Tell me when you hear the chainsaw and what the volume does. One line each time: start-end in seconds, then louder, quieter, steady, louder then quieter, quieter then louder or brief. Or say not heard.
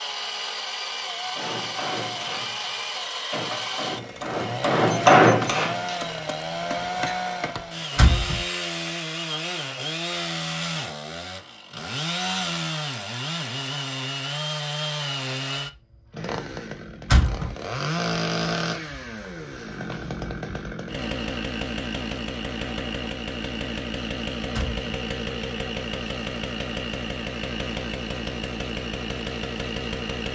0.0-30.3 steady.